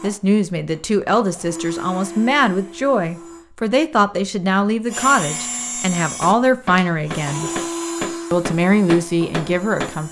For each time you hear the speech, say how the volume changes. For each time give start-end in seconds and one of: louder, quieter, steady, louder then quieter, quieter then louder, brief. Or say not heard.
0.0-7.5 steady
8.3-10.0 brief.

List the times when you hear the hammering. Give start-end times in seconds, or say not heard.
6.2-9.9.